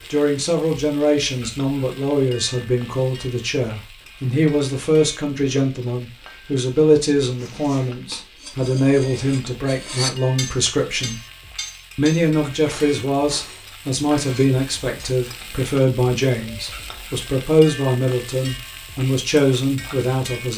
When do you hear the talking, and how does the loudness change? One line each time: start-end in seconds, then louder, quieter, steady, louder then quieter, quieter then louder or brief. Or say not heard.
0.1-11.2 steady
11.9-20.5 steady.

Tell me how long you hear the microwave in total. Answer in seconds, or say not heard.
not heard.